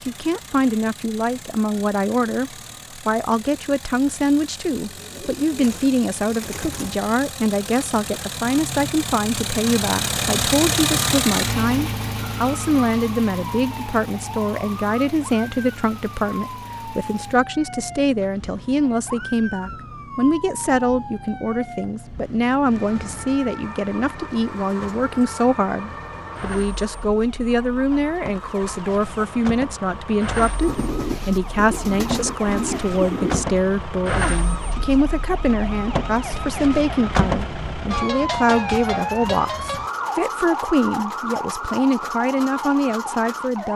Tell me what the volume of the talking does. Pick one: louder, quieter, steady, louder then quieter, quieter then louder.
steady.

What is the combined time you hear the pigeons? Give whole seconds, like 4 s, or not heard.
5 s.